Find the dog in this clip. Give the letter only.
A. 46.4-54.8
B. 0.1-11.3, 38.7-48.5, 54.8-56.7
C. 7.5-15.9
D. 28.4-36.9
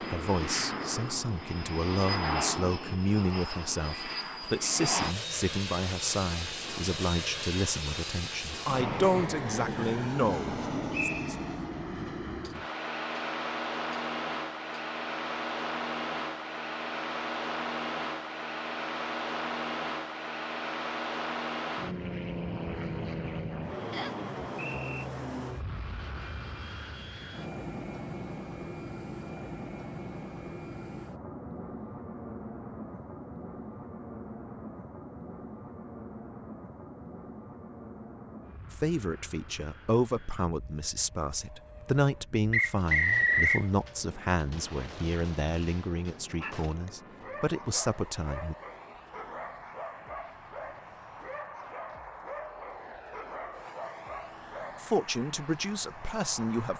A.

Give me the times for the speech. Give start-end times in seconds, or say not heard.
0.1-11.3, 38.7-48.5, 54.8-56.7.